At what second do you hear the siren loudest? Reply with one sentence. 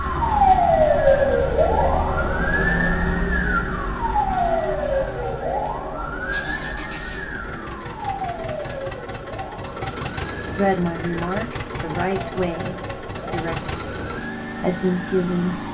The loudest moment of the siren is at 1 second.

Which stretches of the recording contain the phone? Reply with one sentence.
The phone can't be heard in this clip.